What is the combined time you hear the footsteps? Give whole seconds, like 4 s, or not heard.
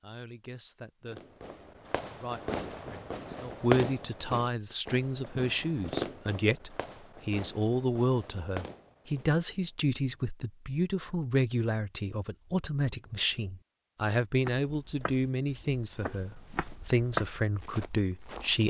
4 s.